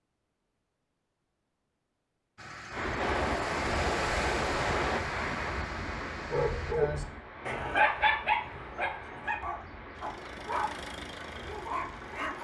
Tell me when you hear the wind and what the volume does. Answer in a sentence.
You can hear the wind from 2.7 to 12.3 s, getting quieter.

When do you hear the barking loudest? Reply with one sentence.
The loudest moment of the barking is at 8 seconds.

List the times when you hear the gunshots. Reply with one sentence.
The gunshots can be heard from 3.0 to 5.0 s.